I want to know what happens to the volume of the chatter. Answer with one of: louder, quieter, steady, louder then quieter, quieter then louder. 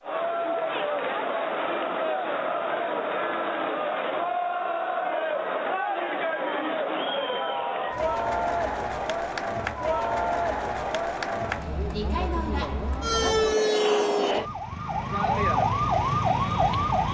steady.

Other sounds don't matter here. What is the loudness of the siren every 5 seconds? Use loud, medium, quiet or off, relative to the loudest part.
off, off, loud, loud.